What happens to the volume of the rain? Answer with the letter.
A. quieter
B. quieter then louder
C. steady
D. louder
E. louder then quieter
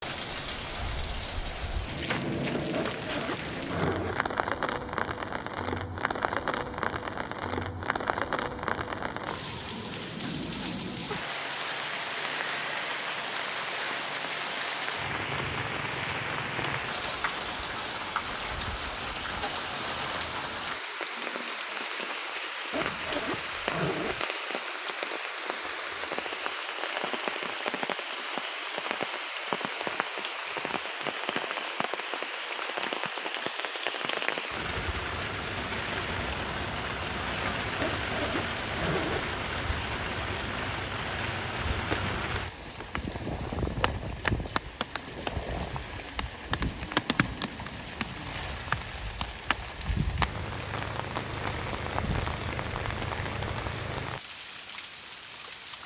C.